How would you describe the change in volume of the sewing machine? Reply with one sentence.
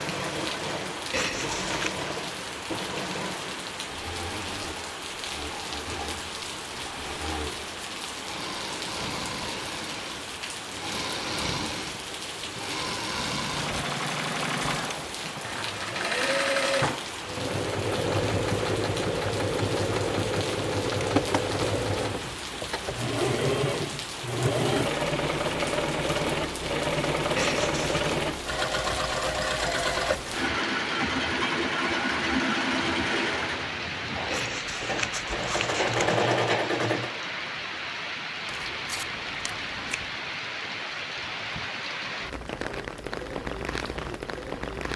The loudness of the sewing machine goes up.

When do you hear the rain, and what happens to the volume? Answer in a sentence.
The rain can be heard from 0.0 to 44.9 s, at a steady volume.